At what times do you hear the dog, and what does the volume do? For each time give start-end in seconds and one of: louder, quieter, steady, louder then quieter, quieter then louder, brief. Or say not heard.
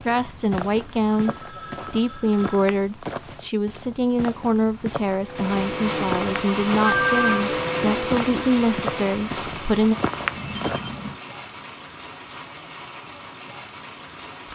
not heard.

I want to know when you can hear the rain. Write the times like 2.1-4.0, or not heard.
5.3-14.5.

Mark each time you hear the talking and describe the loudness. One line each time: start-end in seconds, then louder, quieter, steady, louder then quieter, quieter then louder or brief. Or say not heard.
0.1-9.9 steady.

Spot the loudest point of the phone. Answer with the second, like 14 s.
7 s.